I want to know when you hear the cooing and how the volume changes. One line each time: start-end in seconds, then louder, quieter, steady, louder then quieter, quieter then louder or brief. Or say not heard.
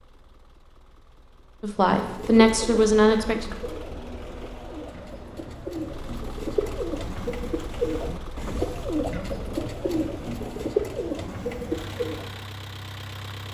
1.9-12.3 louder.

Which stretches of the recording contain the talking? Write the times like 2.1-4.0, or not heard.
1.6-3.5.